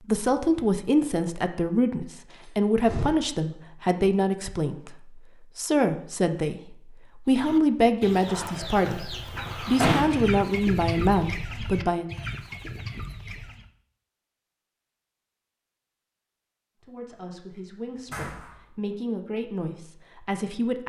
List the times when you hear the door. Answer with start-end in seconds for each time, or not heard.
2.3-3.1, 9.3-10.2, 18.1-18.6.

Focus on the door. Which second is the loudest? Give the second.
10 s.